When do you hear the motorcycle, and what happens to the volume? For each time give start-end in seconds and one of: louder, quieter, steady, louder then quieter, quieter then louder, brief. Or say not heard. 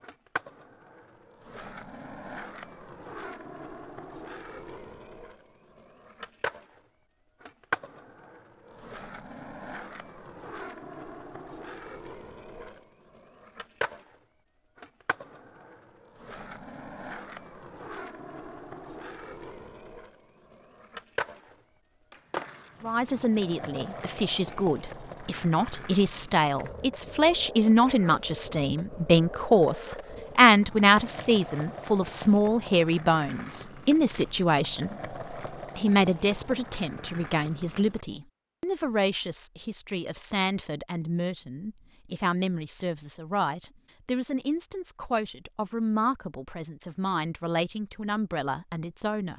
not heard.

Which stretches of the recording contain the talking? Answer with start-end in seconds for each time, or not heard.
22.8-49.3.